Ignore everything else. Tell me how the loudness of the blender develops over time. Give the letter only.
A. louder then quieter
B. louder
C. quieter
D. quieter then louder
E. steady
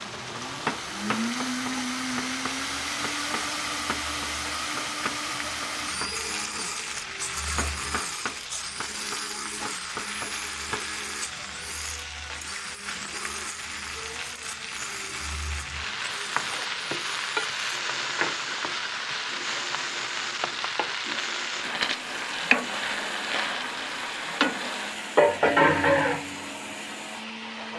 C.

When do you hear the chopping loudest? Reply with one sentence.
The loudest moment of the chopping is at 1 second.